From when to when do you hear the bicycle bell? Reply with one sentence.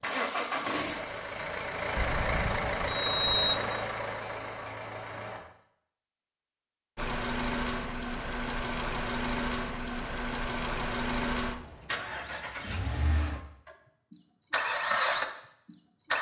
You can hear the bicycle bell from 1.9 to 3.5 s.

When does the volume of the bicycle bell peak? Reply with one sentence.
The volume of the bicycle bell peaks at 3 seconds.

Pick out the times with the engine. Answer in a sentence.
The engine can be heard from 0.0 to 5.4 s and from 7.0 to 16.1 s.